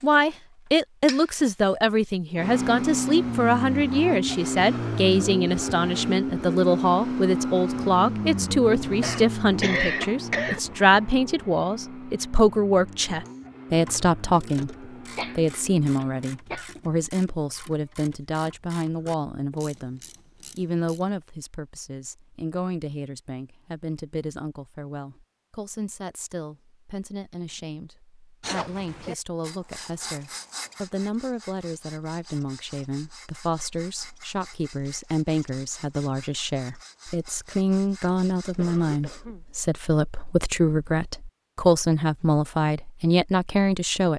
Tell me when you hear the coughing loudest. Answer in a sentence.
The volume of the coughing peaks at 10 seconds.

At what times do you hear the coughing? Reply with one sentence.
The coughing can be heard from 9.0 to 10.6 s, from 15.2 to 16.8 s and from 38.5 to 39.5 s.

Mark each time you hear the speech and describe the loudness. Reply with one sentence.
You can hear the speech from 0.0 to 44.1 s, getting quieter then louder.